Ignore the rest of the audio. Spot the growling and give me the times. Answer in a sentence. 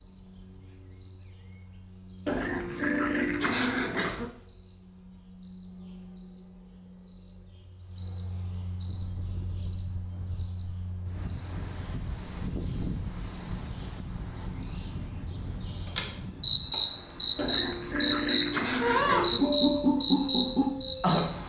The growling can be heard from 2.2 to 4.3 s and from 17.4 to 19.4 s.